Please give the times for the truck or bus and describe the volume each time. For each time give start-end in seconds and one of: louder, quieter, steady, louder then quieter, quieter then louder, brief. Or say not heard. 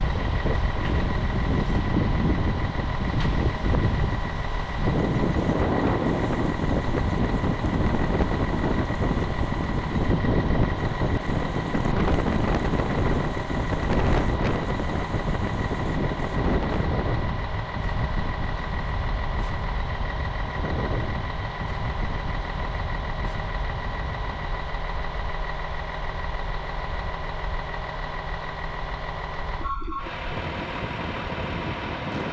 0.0-32.2 steady.